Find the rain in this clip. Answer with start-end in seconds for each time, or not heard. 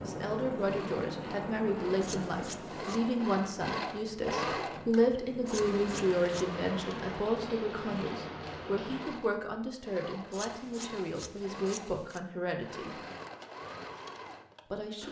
0.0-9.2.